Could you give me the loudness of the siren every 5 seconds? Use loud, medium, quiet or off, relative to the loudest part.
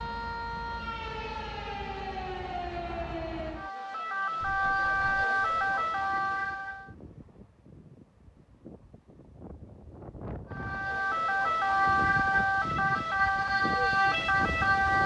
medium, loud, loud.